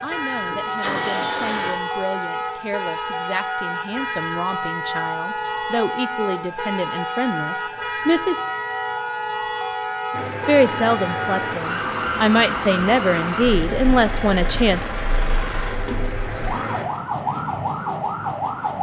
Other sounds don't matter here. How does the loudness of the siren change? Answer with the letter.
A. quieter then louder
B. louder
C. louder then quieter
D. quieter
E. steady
E.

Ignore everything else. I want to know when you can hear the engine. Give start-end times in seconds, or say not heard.
0.0-1.8, 10.1-16.9.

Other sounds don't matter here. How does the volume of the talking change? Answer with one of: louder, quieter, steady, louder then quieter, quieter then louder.
louder.